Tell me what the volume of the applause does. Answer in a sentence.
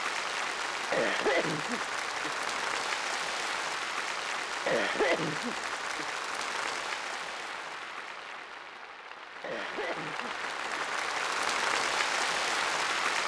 The volume of the applause goes down, then up.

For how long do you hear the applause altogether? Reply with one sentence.
You can hear the applause for 13 seconds altogether.